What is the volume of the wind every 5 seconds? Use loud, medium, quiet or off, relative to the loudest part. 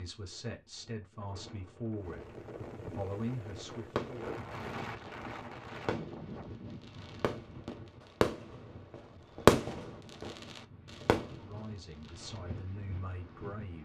loud, loud, medium.